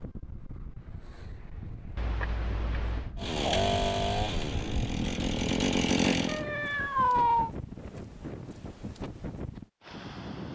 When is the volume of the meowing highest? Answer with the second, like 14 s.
7 s.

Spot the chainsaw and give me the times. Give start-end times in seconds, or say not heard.
3.1-6.5.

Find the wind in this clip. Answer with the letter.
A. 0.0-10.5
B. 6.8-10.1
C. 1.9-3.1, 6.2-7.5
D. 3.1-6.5
A.